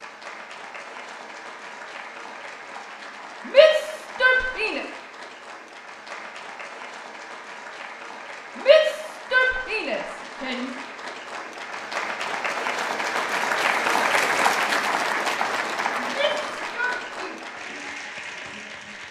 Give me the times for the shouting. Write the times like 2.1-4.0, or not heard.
3.5-4.8, 8.6-10.8, 15.9-17.4.